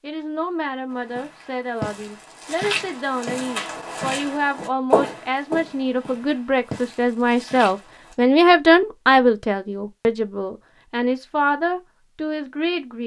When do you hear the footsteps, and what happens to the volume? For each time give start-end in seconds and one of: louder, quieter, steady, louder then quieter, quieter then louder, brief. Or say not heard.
0.9-8.2 louder then quieter.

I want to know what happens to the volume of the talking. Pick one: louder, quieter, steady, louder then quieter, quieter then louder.
louder then quieter.